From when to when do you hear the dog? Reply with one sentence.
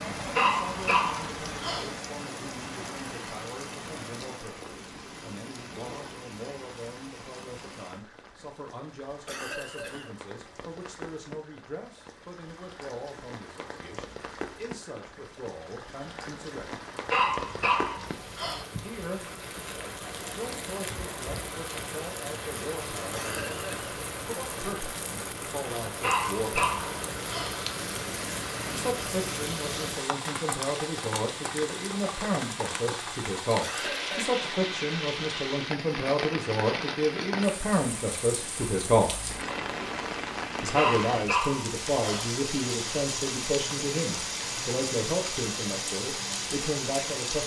The dog can be heard from 0.3 to 1.9 s, from 17.1 to 18.6 s, from 26.0 to 27.6 s and from 40.8 to 42.3 s.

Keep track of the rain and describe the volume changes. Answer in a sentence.
The volume of the rain goes up.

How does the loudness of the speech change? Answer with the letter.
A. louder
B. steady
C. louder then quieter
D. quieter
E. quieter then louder
A.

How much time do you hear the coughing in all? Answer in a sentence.
The coughing can be heard for 2 seconds in total.